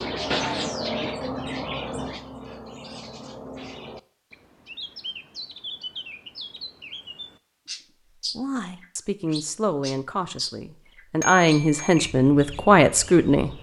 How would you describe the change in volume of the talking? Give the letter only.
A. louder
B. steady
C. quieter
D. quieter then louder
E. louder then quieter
A.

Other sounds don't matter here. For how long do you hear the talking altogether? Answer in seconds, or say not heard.
5 s.